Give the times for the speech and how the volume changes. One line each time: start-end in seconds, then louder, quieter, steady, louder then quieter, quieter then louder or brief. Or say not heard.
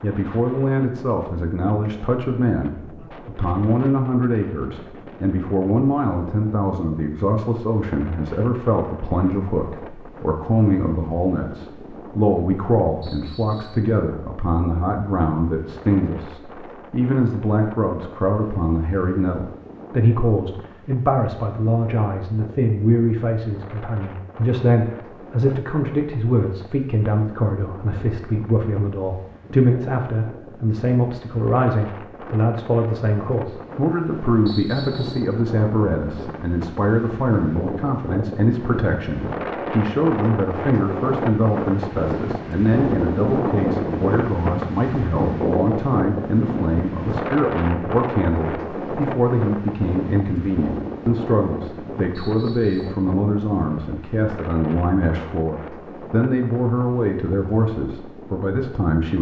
0.0-59.1 steady.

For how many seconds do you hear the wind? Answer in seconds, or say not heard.
59 s.